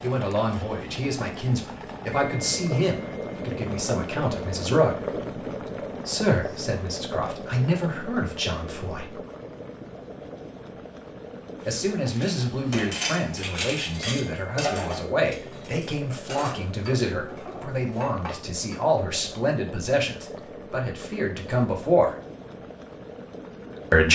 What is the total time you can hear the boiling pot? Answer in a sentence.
The boiling pot can be heard for 24 seconds in total.